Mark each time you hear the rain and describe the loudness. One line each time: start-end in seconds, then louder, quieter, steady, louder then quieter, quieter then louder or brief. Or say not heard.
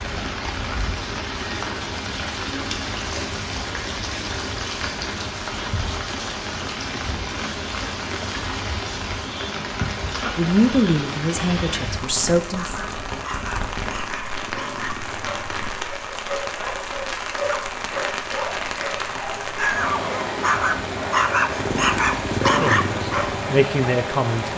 0.0-24.5 steady.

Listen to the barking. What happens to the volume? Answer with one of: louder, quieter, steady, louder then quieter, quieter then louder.
louder.